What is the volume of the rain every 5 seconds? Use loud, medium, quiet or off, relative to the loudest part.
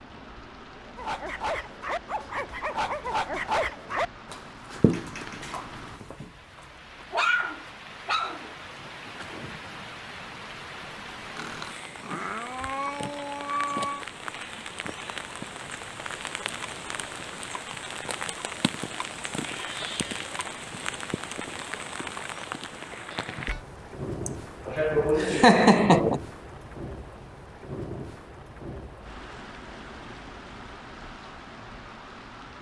medium, medium, loud, loud, loud, loud, medium.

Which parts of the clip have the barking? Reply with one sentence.
The barking can be heard from 0.8 to 9.6 s.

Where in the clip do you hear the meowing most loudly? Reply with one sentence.
The volume of the meowing peaks at 14 seconds.